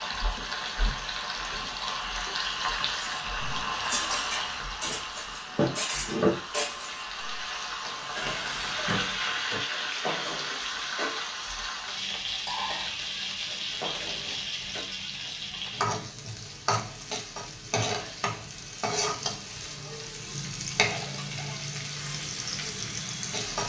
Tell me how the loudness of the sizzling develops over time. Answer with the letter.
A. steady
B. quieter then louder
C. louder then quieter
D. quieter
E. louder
A.